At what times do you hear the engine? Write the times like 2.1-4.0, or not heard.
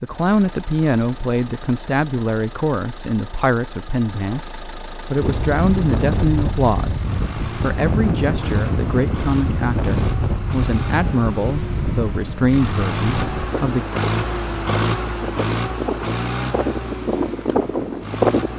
0.0-18.5.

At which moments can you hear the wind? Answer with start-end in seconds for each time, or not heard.
5.2-18.5.